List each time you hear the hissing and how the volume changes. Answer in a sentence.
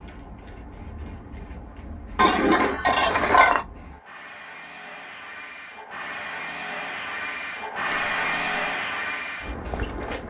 You can hear the hissing from 0.0 to 10.2 s, getting louder.